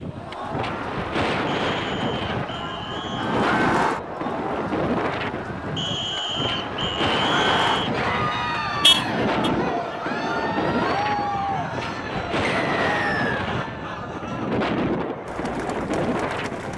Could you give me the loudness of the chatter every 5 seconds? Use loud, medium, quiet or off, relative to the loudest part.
loud, loud, loud, medium.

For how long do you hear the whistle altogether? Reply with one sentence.
The whistle can be heard for 5 seconds in total.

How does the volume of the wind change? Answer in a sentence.
The loudness of the wind stays about the same.